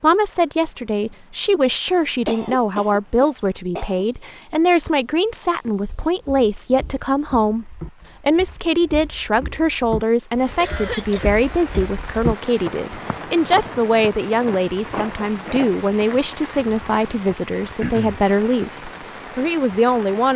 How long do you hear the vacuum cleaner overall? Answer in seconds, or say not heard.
not heard.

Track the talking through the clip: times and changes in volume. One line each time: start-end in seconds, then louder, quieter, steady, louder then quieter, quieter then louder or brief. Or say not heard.
0.0-20.3 steady.